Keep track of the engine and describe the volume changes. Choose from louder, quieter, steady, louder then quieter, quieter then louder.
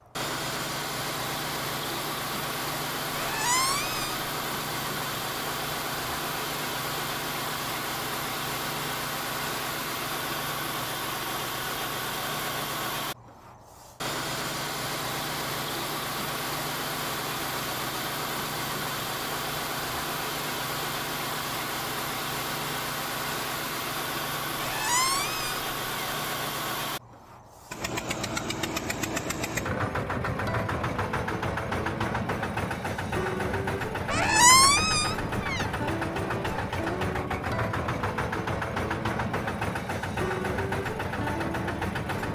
steady.